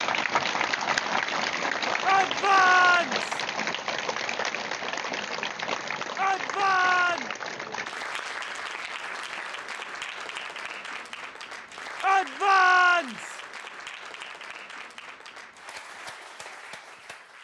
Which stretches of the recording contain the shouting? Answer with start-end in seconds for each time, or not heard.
2.0-3.4, 6.2-7.3, 12.0-13.4.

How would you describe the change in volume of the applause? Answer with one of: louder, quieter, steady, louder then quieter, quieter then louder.
quieter.